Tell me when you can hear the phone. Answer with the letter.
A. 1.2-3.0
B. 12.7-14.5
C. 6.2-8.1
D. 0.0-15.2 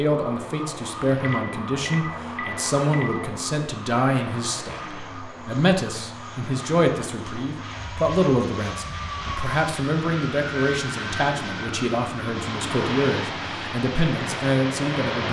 A.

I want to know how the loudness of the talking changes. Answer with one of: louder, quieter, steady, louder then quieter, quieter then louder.
steady.